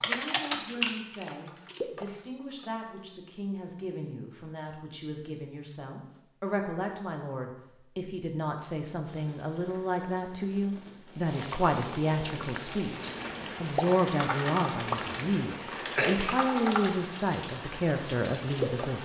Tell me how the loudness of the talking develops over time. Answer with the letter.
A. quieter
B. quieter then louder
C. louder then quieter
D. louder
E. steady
D.